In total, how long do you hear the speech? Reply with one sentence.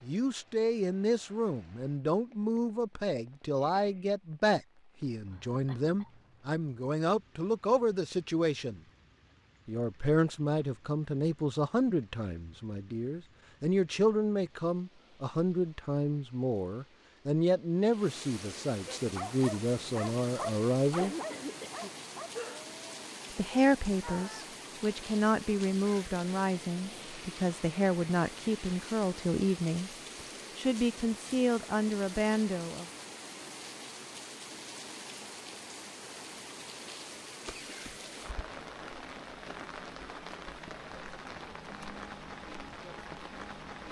You can hear the speech for 29 seconds altogether.